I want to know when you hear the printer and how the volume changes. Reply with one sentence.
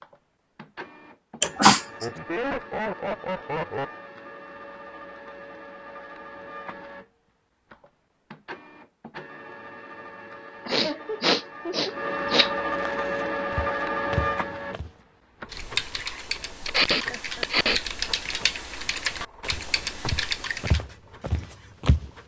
You can hear the printer from 0.0 to 22.2 s, getting louder then quieter.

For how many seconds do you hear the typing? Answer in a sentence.
The typing can be heard for 5 seconds in total.